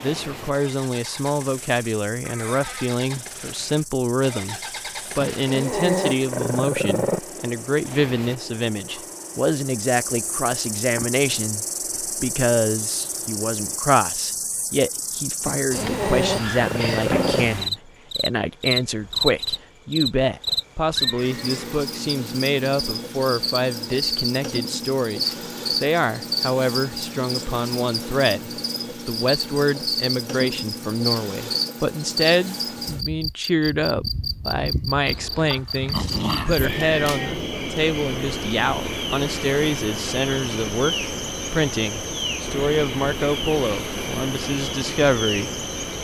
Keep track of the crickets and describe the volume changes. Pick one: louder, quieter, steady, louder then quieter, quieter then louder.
louder.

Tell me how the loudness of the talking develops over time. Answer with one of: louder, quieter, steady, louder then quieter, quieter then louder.
steady.